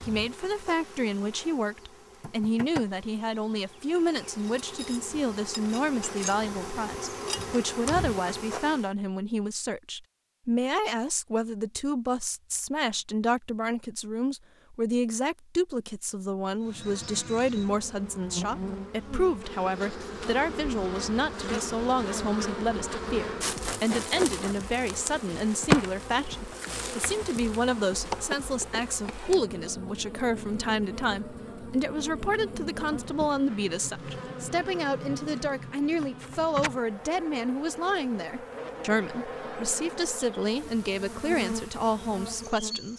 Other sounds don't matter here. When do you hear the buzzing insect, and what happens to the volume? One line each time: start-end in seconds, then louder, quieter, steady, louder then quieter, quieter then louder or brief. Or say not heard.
0.0-8.9 louder
16.6-42.9 louder then quieter.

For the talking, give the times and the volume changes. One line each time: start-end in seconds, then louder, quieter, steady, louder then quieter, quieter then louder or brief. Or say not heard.
0.0-42.9 steady.